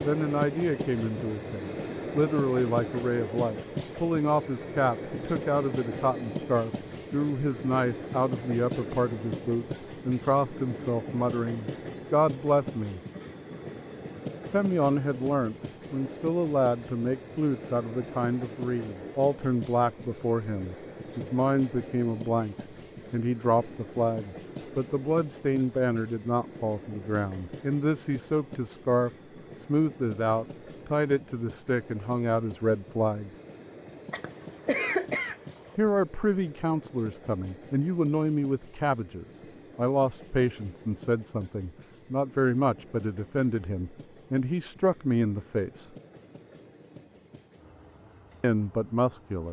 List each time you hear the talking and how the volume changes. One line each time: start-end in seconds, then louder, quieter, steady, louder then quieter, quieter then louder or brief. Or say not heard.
0.0-13.0 steady
14.4-33.3 steady
35.8-45.9 steady
48.4-49.4 brief.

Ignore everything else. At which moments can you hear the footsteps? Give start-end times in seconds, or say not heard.
not heard.